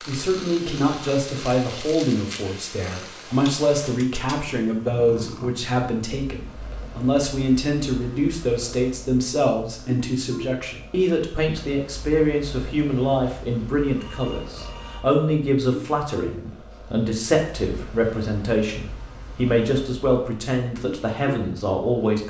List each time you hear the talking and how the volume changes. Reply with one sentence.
The talking can be heard from 0.1 to 22.2 s, at a steady volume.